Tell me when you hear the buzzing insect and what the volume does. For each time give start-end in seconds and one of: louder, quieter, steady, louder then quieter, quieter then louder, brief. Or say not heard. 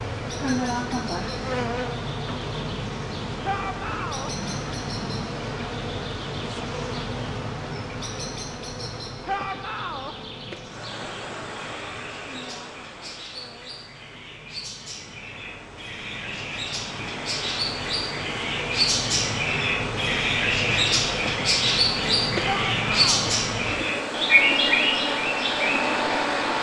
0.0-26.5 quieter then louder.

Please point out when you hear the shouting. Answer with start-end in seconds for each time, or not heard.
3.4-4.3, 9.2-10.2, 22.4-23.4.